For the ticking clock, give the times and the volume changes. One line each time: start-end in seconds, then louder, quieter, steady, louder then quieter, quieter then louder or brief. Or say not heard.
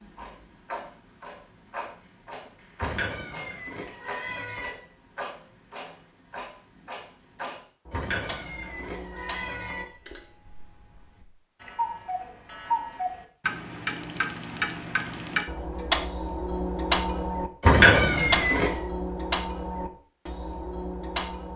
0.0-21.5 louder.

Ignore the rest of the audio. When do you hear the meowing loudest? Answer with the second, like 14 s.
18 s.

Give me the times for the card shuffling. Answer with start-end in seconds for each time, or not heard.
not heard.